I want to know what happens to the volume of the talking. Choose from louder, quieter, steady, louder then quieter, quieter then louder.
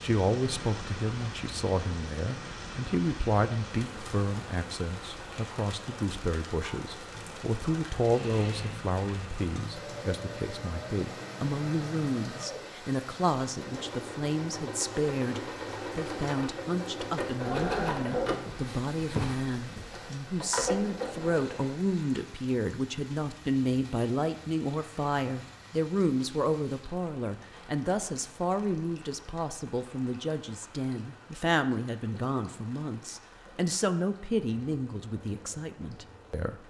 steady.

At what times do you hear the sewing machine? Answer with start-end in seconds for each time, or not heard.
7.1-21.8.